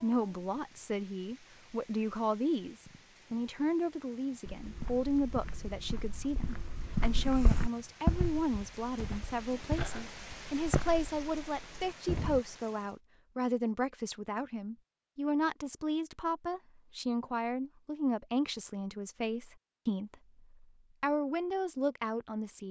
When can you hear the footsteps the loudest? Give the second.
8 s.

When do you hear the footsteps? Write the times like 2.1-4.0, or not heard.
4.5-12.4.